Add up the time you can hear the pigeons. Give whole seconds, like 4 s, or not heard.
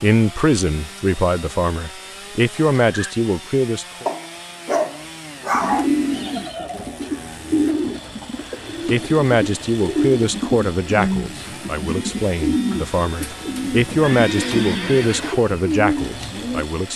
11 s.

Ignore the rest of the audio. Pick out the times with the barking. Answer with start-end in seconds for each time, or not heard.
4.0-5.9.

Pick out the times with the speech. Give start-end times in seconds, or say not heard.
0.0-4.0, 8.8-16.9.